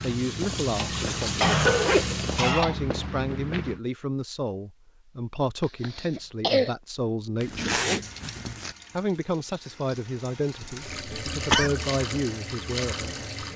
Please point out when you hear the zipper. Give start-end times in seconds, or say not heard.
1.2-2.2, 7.4-8.8.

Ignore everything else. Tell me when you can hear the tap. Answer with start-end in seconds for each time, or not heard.
0.0-2.5, 8.0-13.5.